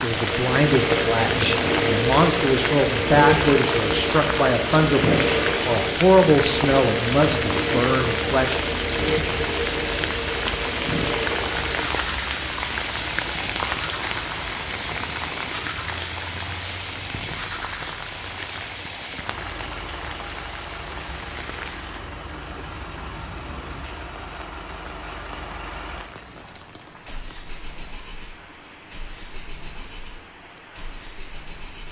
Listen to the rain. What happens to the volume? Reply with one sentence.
The loudness of the rain goes down.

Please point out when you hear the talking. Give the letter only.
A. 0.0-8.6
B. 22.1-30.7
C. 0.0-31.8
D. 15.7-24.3
A.